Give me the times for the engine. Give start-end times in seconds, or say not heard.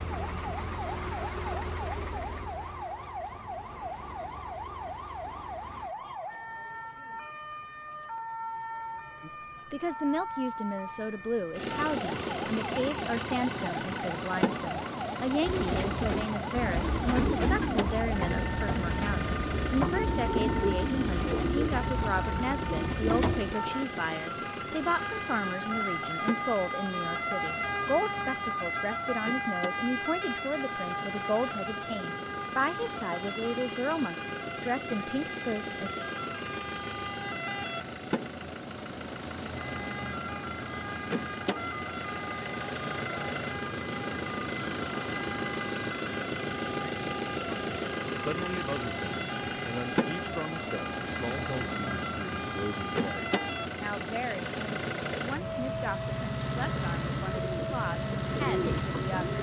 0.0-6.0, 11.5-59.3.